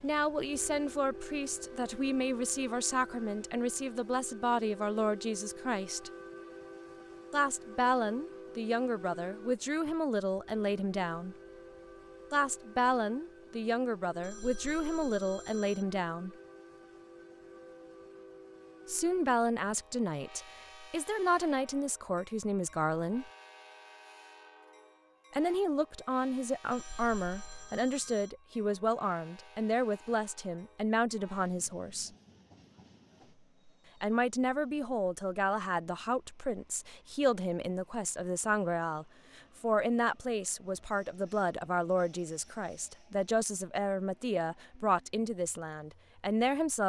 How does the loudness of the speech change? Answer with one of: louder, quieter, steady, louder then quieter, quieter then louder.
steady.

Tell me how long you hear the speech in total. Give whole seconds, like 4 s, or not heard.
38 s.